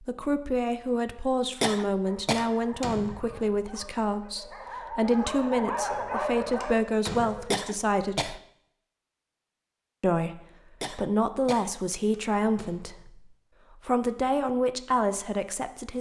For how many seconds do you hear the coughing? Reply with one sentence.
The coughing can be heard for 3 seconds in total.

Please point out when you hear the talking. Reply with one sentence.
The talking can be heard from 0.0 to 8.3 s and from 10.0 to 15.9 s.